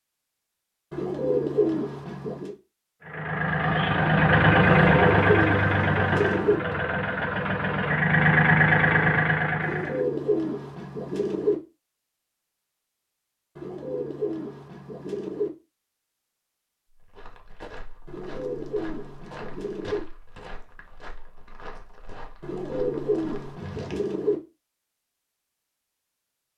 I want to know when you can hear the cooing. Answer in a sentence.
You can hear the cooing from 0.9 to 2.5 s, from 4.6 to 6.6 s, from 9.6 to 11.6 s, from 13.6 to 15.5 s, from 18.1 to 20.0 s and from 22.4 to 24.4 s.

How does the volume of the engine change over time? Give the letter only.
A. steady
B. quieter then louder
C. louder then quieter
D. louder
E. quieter
B.